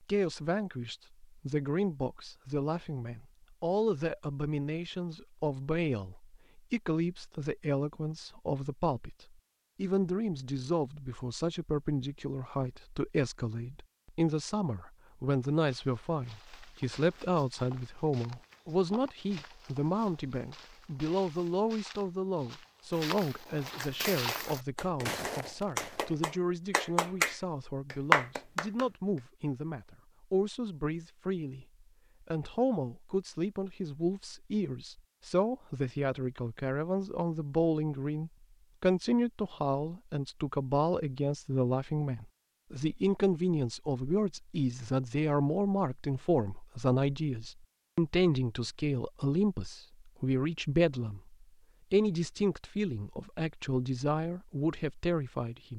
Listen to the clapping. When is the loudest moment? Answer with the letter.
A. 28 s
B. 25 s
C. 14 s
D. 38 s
A.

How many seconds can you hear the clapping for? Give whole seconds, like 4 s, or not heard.
5 s.